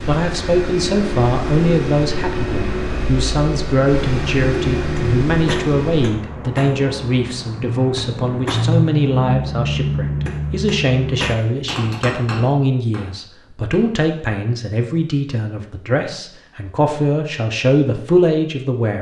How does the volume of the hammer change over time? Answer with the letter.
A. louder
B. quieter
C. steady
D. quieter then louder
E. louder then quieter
E.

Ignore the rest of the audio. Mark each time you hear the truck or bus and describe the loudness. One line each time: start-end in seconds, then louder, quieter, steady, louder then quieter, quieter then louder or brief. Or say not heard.
0.0-6.1 steady.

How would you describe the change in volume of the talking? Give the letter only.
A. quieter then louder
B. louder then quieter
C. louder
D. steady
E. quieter
D.